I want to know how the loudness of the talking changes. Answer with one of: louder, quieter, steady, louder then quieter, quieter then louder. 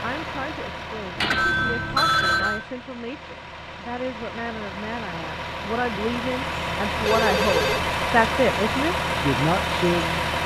louder.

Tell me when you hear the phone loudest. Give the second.
2 s.